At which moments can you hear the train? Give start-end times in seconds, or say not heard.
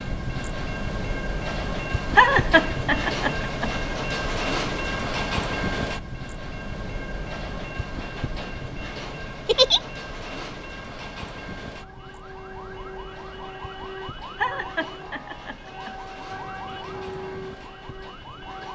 0.0-18.7.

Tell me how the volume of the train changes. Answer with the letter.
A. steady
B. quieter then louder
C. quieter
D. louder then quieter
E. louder
C.